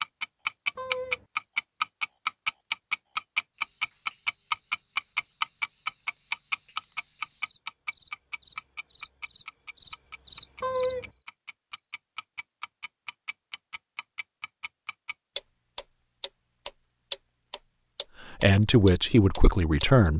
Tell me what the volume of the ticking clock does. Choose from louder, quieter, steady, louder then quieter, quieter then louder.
quieter then louder.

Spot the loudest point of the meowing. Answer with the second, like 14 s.
11 s.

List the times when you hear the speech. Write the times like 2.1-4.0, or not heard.
18.4-20.1.